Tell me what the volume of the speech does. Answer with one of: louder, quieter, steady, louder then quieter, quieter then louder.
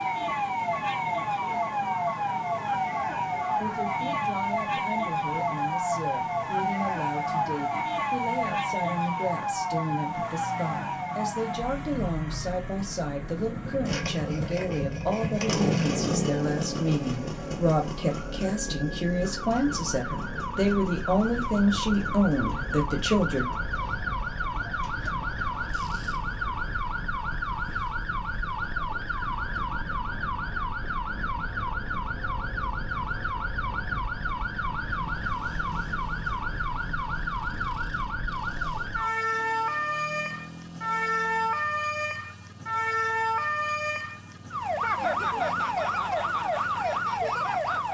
louder.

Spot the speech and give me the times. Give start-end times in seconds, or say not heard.
3.5-23.5.